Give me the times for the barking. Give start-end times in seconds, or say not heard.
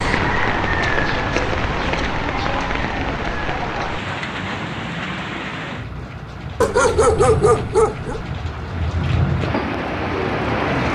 6.6-8.2.